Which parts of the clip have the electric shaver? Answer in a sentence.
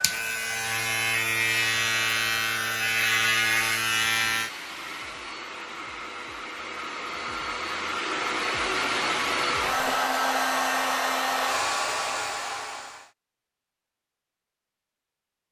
The electric shaver can be heard from 0.0 to 4.5 s.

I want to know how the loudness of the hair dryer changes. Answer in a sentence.
The volume of the hair dryer goes up.